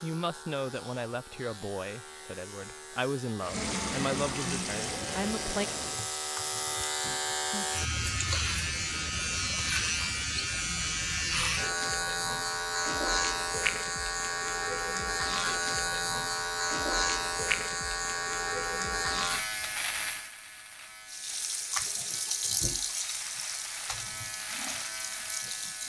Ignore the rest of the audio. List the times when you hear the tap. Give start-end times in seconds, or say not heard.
3.4-7.5, 21.1-25.8.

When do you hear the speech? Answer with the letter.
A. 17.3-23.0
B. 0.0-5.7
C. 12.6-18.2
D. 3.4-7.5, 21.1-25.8
B.